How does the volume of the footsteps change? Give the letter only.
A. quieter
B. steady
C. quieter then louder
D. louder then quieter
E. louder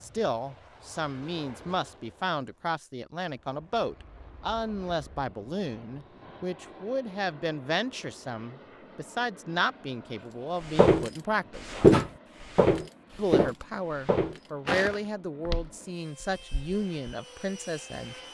A.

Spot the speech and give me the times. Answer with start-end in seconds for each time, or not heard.
0.0-11.7, 13.2-18.1.